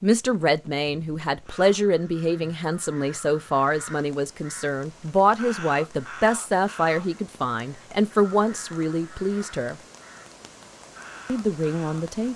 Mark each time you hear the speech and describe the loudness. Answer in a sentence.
The speech can be heard from 0.0 to 9.8 s, at a steady volume; and briefly from 11.2 to 12.3 s.